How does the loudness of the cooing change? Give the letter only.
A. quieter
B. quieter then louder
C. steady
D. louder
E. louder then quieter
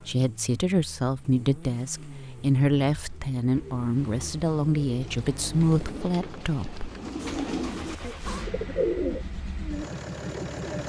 D.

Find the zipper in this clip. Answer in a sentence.
The zipper can be heard from 7.2 to 8.5 s.